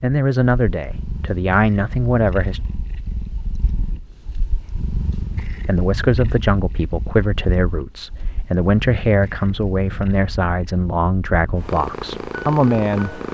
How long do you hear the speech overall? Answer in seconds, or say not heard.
10 s.